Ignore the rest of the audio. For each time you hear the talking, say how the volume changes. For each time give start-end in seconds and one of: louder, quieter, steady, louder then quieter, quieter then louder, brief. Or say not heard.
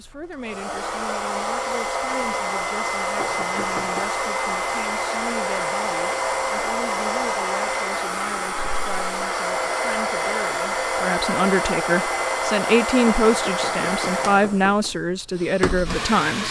0.0-16.4 louder.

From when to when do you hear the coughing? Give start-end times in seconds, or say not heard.
not heard.